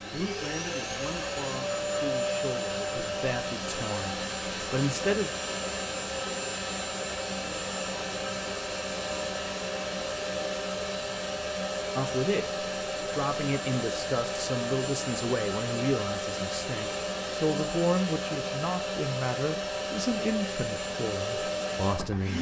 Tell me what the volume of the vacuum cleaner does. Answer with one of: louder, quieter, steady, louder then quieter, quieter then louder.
steady.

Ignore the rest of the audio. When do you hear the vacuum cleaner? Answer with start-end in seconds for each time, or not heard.
0.0-22.3.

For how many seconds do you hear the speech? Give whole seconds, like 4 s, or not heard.
16 s.